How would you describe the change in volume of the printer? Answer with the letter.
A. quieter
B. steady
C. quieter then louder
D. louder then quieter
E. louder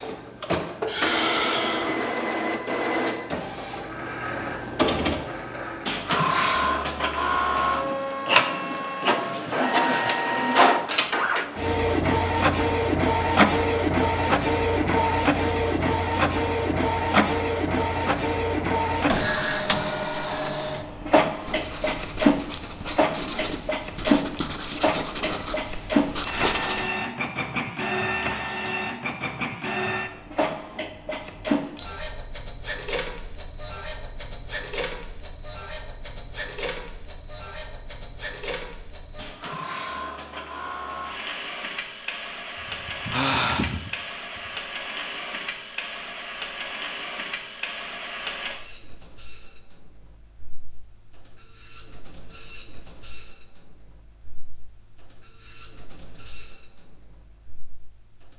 A.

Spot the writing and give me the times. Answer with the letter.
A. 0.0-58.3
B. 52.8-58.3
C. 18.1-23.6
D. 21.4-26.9
D.